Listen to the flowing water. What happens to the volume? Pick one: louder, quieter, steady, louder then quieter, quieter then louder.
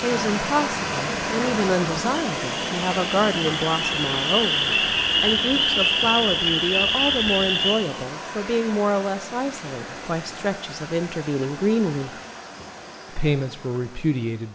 quieter.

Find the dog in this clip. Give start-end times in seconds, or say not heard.
not heard.